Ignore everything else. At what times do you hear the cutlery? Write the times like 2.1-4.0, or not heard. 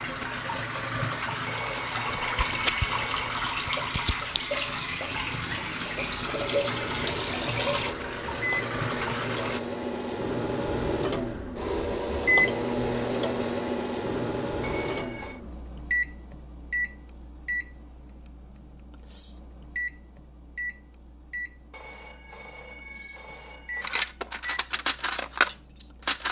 23.8-26.2.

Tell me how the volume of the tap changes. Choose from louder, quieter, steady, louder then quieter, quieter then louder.
steady.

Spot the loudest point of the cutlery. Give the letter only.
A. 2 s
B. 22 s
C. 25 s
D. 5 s
C.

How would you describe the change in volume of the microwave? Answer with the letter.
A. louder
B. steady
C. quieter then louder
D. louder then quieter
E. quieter
D.